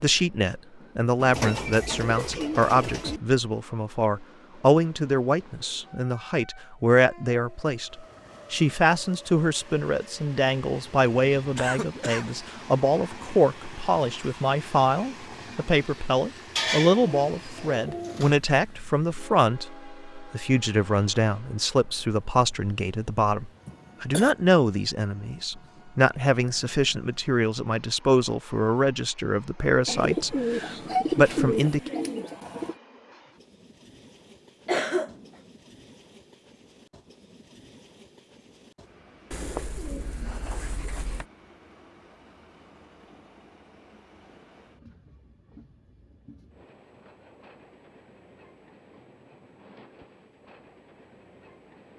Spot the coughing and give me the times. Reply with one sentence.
You can hear the coughing from 11.6 to 12.3 s, from 23.6 to 24.4 s and from 34.6 to 35.2 s.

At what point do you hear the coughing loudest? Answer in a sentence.
The loudest moment of the coughing is at 35 seconds.